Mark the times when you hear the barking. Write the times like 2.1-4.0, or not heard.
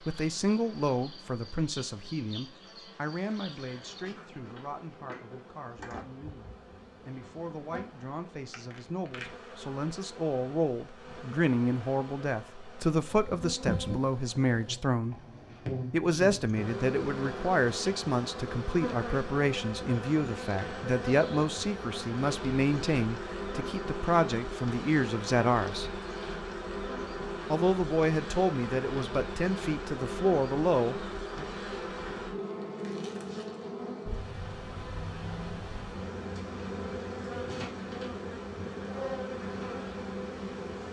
not heard.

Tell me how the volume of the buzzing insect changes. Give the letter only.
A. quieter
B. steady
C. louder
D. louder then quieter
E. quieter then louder
C.